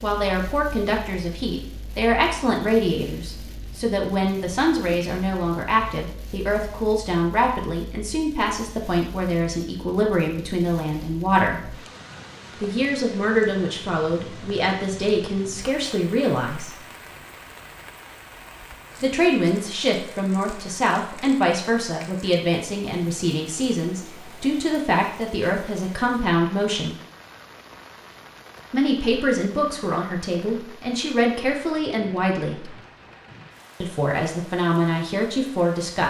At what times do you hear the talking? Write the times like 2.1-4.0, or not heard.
0.0-11.8, 12.6-16.8, 19.0-26.9, 28.7-32.7, 33.8-36.0.